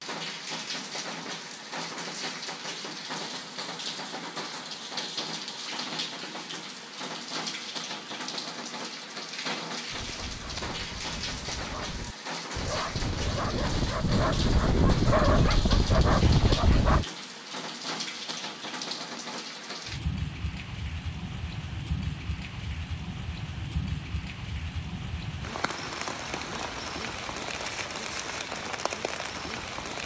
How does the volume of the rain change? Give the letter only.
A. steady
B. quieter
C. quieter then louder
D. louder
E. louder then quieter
A.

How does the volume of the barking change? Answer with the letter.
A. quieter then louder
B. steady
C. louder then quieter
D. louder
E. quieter
D.